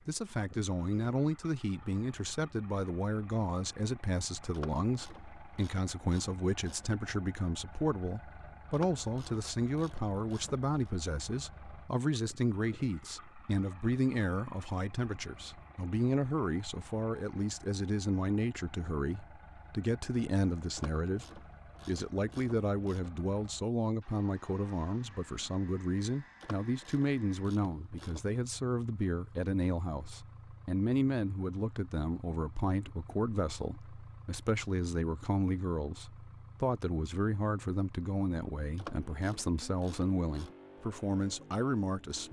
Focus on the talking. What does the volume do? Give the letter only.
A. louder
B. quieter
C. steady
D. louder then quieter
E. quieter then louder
C.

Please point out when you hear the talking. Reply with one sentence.
You can hear the talking from 0.1 to 42.2 s.